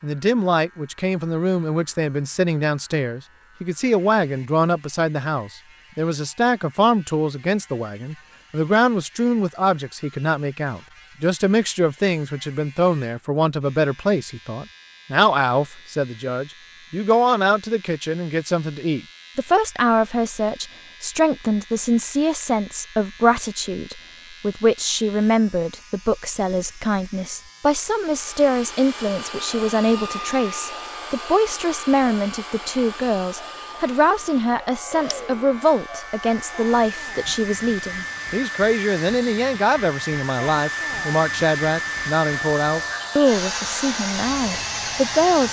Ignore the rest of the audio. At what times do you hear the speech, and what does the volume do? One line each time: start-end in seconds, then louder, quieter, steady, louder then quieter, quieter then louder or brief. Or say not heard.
0.0-45.4 steady.